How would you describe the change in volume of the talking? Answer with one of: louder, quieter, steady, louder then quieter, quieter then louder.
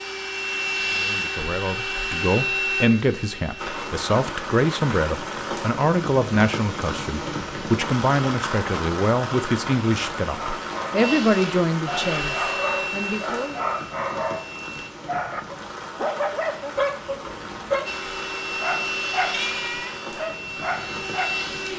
steady.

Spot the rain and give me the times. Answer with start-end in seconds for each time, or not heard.
3.5-21.7.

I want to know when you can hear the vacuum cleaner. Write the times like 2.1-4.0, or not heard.
0.0-3.8, 11.0-14.9, 17.9-21.7.